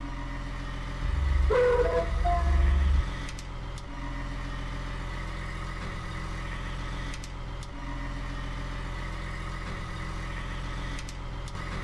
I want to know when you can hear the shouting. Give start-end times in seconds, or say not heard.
not heard.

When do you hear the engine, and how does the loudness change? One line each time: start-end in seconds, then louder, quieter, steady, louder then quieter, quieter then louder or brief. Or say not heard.
0.0-11.7 steady.